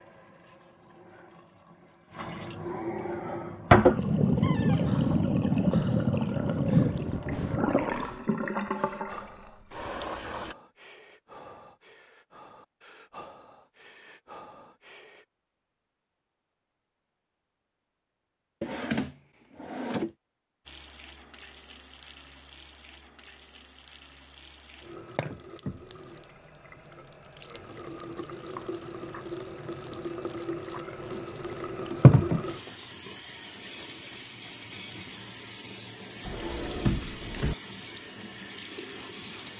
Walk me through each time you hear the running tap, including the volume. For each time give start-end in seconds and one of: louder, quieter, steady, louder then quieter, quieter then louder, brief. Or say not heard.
0.0-10.6 louder then quieter
20.6-39.5 louder then quieter.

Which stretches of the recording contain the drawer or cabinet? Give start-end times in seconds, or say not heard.
4.4-5.0, 18.6-20.1, 36.2-37.5.